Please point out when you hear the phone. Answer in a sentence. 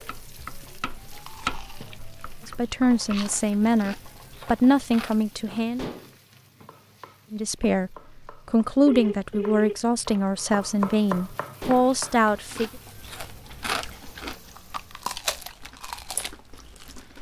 The phone can be heard from 8.8 to 9.8 s.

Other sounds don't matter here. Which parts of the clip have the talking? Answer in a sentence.
The talking can be heard from 2.5 to 5.8 s and from 7.3 to 12.7 s.